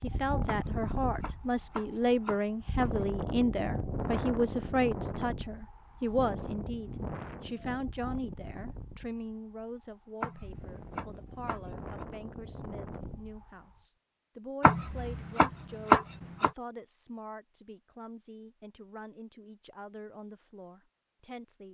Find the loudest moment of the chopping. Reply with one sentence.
The loudest moment of the chopping is at 16 seconds.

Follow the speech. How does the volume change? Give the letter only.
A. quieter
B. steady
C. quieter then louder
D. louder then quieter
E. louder
A.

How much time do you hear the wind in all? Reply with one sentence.
The wind can be heard for 14 seconds in total.